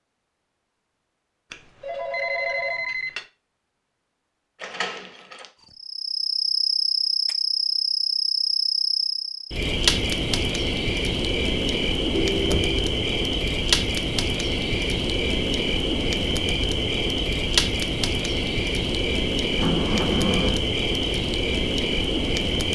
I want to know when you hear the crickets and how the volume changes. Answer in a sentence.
You can hear the crickets from 5.7 to 22.6 s, at a steady volume.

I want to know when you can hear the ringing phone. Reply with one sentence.
The ringing phone can be heard from 1.5 to 3.2 s and from 12.2 to 12.8 s.